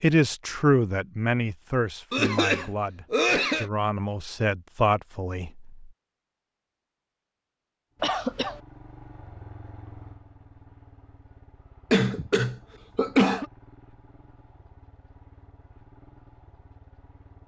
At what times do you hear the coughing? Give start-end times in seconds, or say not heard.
2.1-3.6, 8.0-8.6, 11.9-13.4.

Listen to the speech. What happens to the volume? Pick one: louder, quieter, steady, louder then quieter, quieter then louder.
quieter then louder.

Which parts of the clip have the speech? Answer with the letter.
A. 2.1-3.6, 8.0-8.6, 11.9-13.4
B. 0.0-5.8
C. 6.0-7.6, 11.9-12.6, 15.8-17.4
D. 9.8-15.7
B.